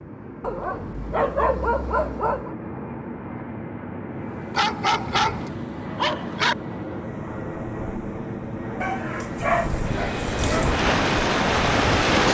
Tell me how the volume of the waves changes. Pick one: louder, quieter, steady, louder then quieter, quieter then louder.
quieter then louder.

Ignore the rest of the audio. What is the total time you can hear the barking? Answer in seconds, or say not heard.
6 s.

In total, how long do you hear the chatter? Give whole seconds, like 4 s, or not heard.
not heard.